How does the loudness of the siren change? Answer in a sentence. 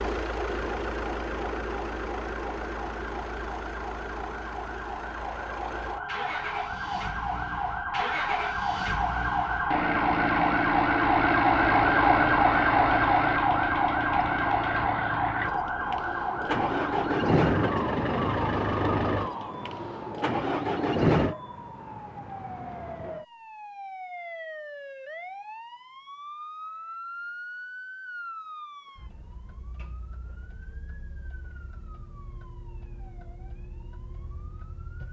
The volume of the siren goes up, then down.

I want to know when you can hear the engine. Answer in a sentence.
You can hear the engine from 0.0 to 21.4 s.